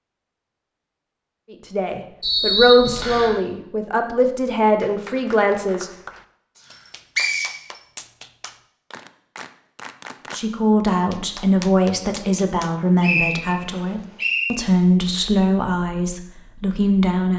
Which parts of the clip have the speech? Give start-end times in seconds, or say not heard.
1.5-5.9, 10.3-17.3.